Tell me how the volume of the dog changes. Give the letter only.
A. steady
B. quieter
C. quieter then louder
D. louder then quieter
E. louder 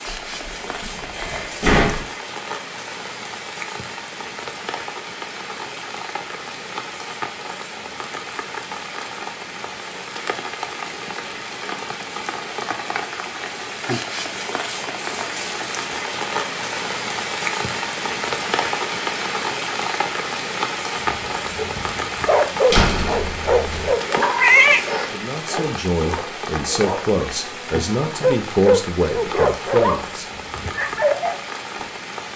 C.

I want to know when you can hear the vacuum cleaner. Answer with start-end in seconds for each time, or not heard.
not heard.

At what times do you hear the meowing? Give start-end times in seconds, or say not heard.
23.7-25.1.